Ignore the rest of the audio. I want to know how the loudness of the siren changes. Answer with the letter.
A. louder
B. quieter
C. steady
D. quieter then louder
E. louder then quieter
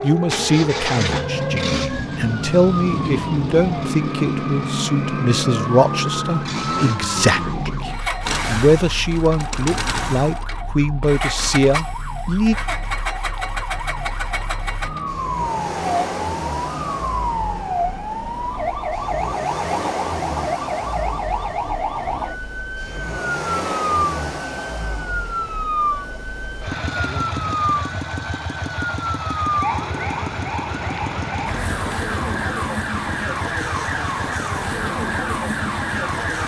D.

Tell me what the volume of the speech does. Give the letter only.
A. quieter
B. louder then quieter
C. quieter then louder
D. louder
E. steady
E.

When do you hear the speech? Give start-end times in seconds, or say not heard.
0.0-12.6.